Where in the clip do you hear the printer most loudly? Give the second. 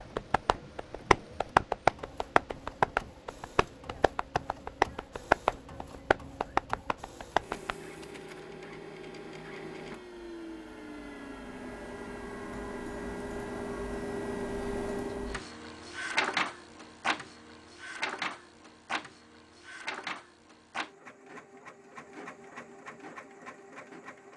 17 s.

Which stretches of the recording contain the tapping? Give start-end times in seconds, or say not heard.
0.0-7.8.